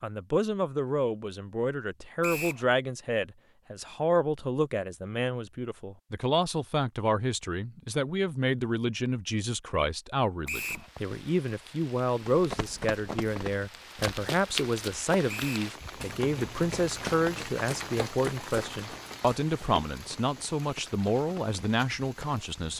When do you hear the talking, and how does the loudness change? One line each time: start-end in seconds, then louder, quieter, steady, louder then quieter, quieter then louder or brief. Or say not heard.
0.0-22.7 steady.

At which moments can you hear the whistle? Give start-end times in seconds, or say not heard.
2.2-2.6, 10.4-10.9, 15.2-15.7.